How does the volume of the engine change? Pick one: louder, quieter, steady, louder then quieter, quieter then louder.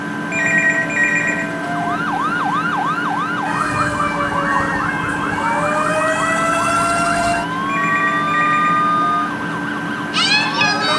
steady.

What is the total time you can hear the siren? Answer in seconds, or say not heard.
9 s.